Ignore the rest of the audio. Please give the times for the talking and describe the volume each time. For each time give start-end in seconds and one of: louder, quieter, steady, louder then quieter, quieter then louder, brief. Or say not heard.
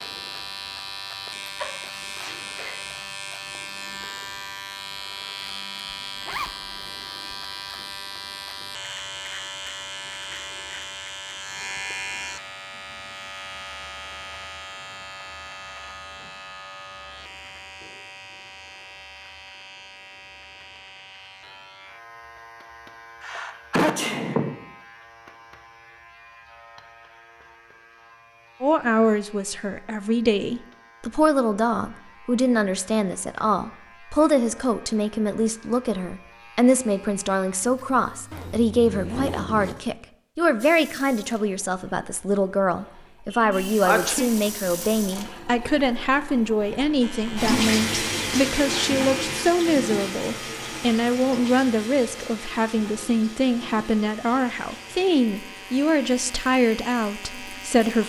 28.6-58.0 steady.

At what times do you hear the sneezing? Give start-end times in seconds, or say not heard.
1.6-2.8, 23.2-24.6, 43.3-44.3.